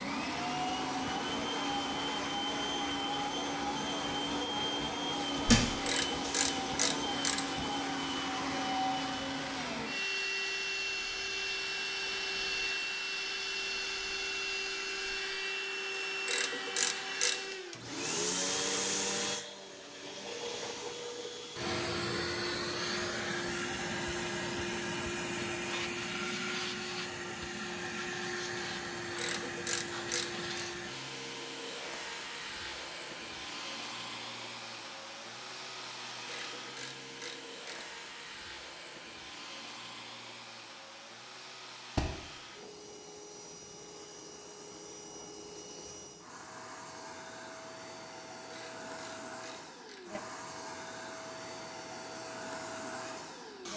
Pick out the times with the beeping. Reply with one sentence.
You can't hear the beeping here.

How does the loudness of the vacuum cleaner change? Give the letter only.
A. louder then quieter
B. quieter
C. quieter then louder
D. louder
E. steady
B.